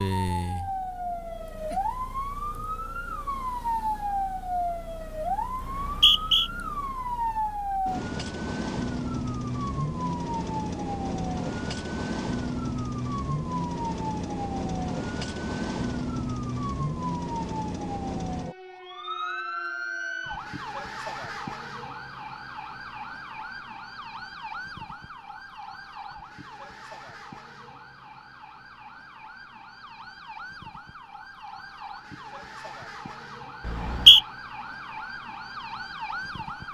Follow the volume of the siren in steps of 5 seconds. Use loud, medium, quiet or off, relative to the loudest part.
loud, loud, loud, loud, medium, quiet, medium, medium.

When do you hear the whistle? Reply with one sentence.
The whistle can be heard from 5.6 to 6.5 s and from 33.6 to 34.2 s.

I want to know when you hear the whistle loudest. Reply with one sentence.
The loudest moment of the whistle is at 34 seconds.